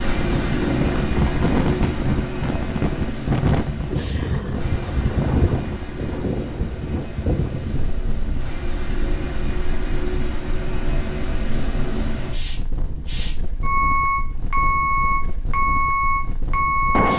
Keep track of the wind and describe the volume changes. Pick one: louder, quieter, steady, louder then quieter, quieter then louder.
quieter.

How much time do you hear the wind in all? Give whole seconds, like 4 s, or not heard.
17 s.